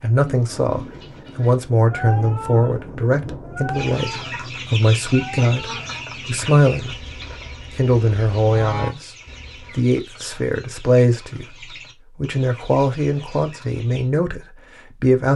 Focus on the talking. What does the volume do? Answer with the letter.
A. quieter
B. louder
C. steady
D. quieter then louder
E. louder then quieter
C.